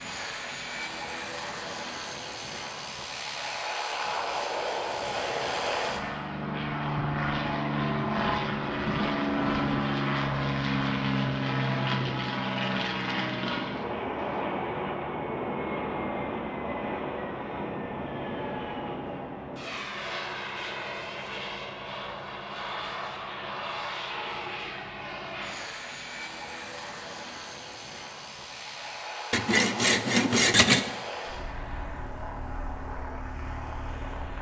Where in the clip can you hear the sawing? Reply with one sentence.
You can hear the sawing from 29.3 to 30.9 s.